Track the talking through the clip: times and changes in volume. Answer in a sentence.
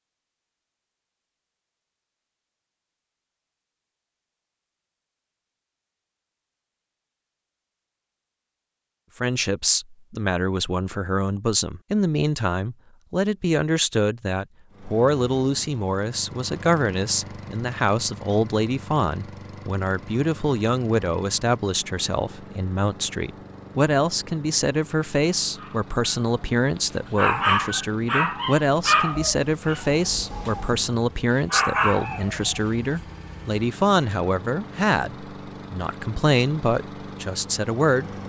You can hear the talking from 9.2 to 38.1 s, at a steady volume.